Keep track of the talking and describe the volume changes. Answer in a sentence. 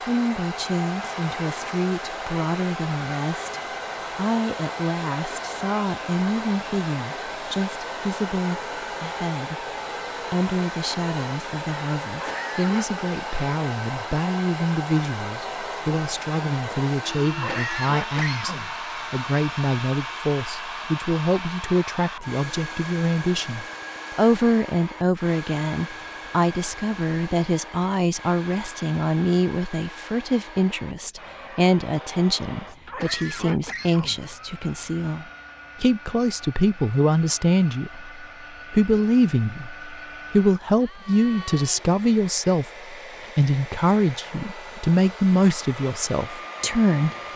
The volume of the talking goes up.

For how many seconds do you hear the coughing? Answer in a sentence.
You can hear the coughing for 4 seconds altogether.